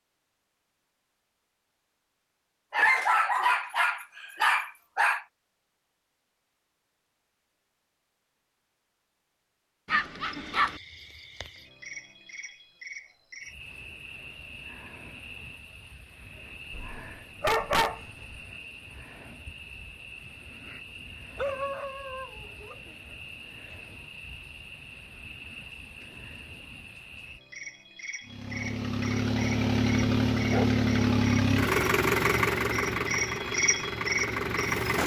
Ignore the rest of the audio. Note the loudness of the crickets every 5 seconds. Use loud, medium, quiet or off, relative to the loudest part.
off, off, quiet, quiet, quiet, medium, loud.